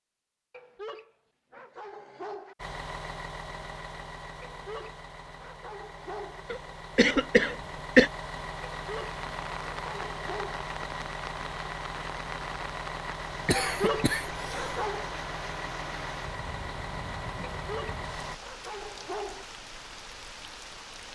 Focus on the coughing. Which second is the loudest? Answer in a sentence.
The volume of the coughing peaks at 8 seconds.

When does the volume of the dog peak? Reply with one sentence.
The volume of the dog peaks at 14 seconds.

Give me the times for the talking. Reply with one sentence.
The talking can't be heard in this clip.